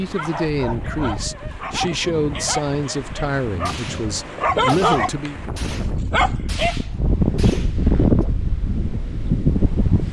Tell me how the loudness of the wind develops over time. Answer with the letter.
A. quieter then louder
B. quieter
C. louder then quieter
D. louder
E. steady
D.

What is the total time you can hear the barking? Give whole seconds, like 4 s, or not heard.
7 s.